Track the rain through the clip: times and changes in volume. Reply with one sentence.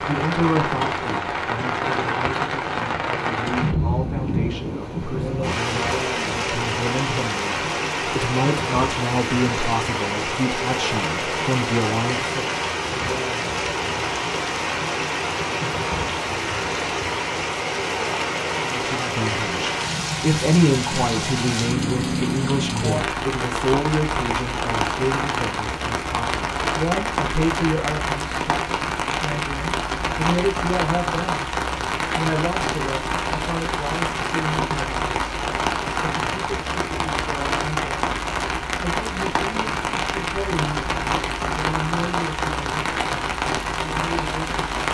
The rain can be heard from 0.0 to 44.8 s, at a steady volume.